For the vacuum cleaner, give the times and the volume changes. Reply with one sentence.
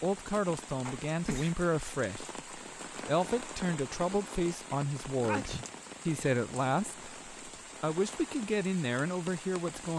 You can't hear the vacuum cleaner here.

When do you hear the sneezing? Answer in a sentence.
You can hear the sneezing from 0.8 to 1.6 s and from 5.2 to 5.7 s.